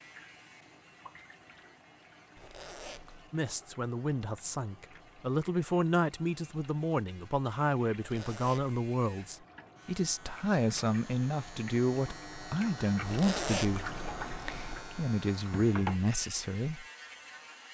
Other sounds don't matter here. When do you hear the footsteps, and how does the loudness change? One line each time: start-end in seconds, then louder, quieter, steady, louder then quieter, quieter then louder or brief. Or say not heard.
not heard.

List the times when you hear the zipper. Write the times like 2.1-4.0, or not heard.
2.4-3.4, 8.0-8.8, 13.0-14.8.